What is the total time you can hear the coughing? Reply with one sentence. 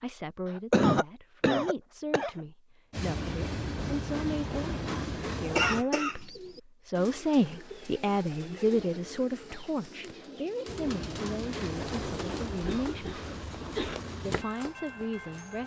You can hear the coughing for 4 seconds altogether.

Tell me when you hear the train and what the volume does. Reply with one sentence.
You can hear the train briefly from 2.9 to 5.8 s; and from 10.7 to 15.6 s, getting quieter.